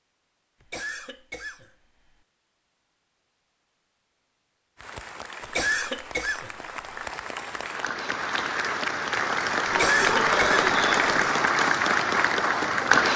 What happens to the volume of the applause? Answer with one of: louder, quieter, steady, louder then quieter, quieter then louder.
louder.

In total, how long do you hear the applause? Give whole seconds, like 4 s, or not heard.
8 s.